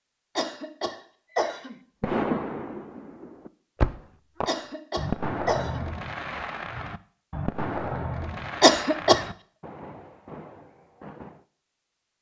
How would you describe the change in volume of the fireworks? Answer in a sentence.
The volume of the fireworks goes down.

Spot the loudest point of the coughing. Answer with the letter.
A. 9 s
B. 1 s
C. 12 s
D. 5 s
A.